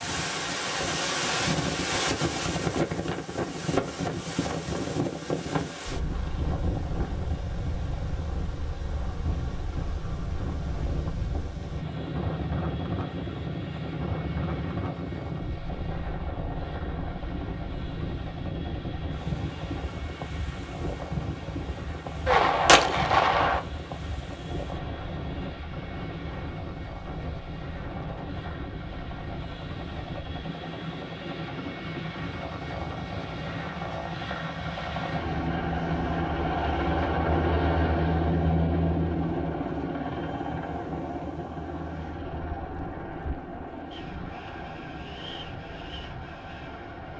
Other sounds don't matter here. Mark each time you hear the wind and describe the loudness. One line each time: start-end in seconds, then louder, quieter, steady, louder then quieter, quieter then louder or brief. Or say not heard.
0.0-47.1 quieter.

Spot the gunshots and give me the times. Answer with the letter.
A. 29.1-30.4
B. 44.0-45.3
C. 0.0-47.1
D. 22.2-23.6
D.